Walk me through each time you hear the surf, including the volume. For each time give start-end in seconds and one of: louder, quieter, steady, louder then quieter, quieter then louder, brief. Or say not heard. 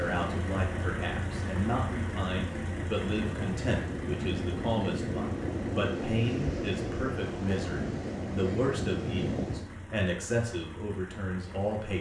0.0-9.7 louder.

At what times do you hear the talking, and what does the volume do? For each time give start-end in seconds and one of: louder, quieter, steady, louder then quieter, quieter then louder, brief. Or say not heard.
0.0-11.9 steady.